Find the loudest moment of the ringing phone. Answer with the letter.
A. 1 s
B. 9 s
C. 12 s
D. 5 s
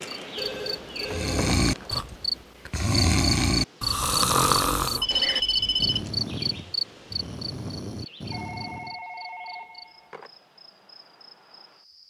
D.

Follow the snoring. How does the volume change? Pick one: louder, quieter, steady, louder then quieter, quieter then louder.
quieter.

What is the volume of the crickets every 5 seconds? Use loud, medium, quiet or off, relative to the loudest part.
loud, loud, quiet.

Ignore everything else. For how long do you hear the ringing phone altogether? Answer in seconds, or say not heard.
5 s.